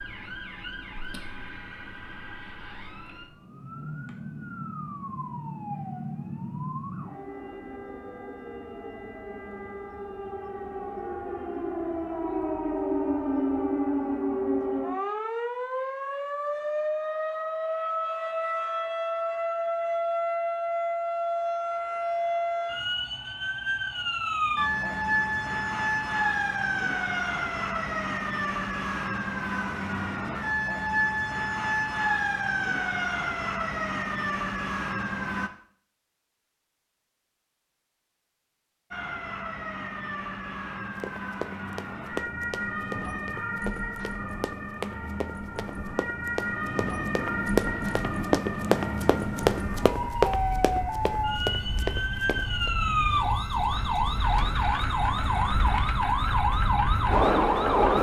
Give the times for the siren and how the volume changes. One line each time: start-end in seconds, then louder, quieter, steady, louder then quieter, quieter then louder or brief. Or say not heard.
0.0-35.5 louder
38.9-57.9 louder.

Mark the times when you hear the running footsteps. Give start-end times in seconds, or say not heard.
41.0-52.7.